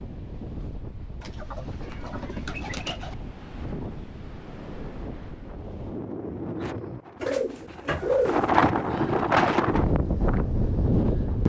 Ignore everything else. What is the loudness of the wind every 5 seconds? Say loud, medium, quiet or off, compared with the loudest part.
quiet, loud, loud.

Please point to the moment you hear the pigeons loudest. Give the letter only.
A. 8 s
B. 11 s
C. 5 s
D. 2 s
A.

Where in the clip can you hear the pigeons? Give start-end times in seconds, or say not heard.
1.2-3.1, 7.2-8.6.